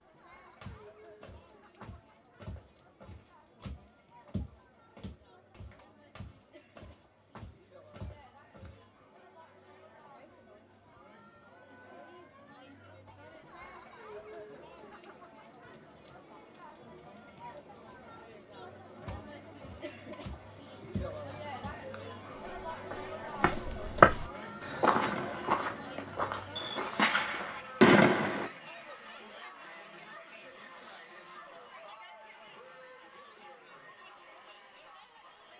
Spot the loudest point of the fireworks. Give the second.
28 s.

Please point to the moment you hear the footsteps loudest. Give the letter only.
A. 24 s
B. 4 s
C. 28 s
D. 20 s
A.